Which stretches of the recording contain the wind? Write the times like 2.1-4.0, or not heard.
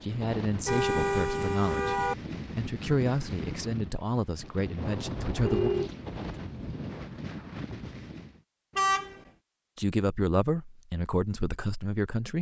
0.0-8.4.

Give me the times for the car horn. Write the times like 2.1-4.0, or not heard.
0.7-2.1, 5.2-6.8, 8.8-9.2.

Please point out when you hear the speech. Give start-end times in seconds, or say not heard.
0.0-5.7, 9.8-12.3.